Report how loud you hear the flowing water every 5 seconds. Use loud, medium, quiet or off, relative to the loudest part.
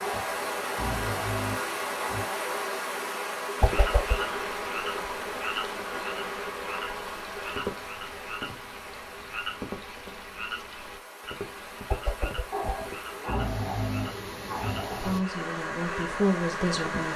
loud, medium, medium, loud.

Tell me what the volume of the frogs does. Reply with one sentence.
The loudness of the frogs goes down.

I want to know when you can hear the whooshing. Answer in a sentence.
The whooshing can be heard from 3.6 to 4.2 s and from 11.9 to 12.7 s.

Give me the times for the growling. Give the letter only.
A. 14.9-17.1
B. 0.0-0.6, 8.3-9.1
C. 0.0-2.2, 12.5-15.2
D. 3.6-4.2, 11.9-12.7
C.